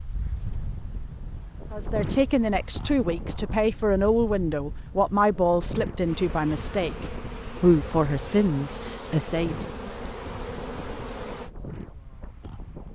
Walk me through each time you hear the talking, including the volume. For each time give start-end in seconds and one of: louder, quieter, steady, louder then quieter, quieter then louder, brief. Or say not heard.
1.7-9.7 steady.